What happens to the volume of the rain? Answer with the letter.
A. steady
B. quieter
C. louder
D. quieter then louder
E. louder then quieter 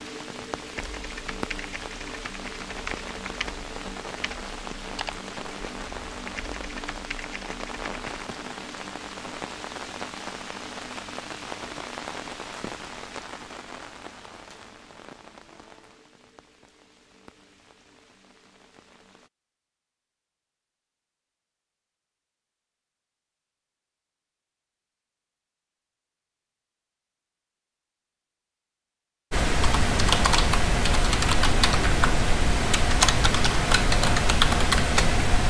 B.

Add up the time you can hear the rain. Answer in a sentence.
You can hear the rain for 19 seconds altogether.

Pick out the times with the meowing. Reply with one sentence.
You can't hear the meowing here.